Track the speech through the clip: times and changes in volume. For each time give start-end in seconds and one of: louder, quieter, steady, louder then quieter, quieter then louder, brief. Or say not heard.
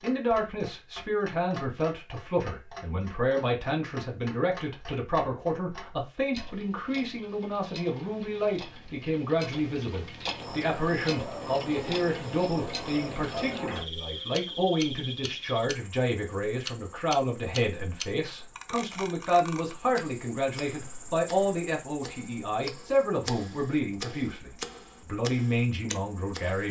0.0-26.6 steady.